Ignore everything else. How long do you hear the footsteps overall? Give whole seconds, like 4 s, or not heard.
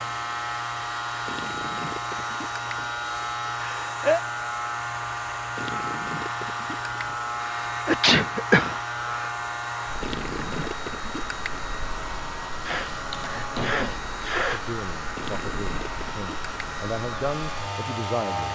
not heard.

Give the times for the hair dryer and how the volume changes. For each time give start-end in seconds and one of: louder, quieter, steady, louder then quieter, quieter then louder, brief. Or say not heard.
0.0-18.5 steady.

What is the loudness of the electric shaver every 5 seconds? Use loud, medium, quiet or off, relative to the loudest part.
loud, loud, medium, loud.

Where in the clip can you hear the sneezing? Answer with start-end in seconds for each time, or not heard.
3.6-4.2, 7.4-9.2, 12.7-14.6.